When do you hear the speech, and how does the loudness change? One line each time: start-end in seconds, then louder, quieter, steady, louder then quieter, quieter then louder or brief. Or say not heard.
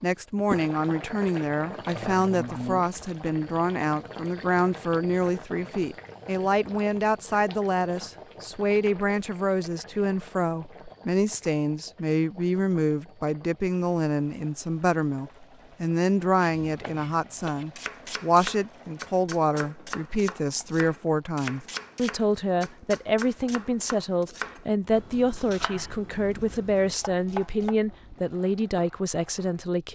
0.0-29.8 steady.